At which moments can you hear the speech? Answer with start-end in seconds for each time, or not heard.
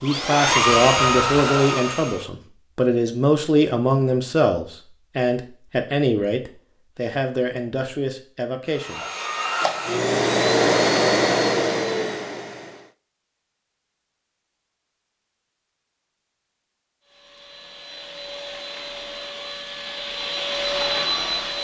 0.0-9.0.